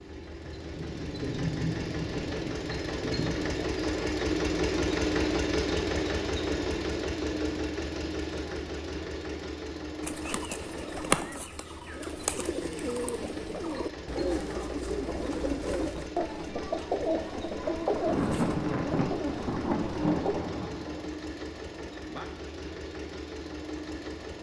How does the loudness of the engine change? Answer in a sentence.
The volume of the engine goes down.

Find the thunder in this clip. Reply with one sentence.
The thunder can be heard from 0.4 to 3.6 s and from 17.6 to 21.1 s.